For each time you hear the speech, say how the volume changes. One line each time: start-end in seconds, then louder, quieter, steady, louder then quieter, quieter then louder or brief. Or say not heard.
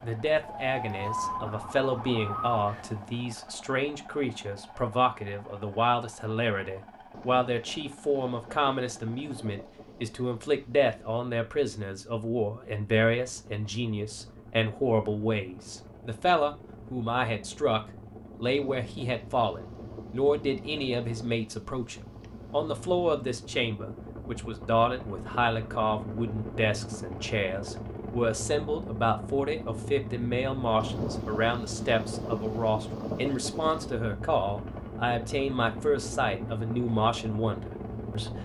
0.0-17.8 steady
18.4-38.4 steady.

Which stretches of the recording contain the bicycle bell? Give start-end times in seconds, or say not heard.
not heard.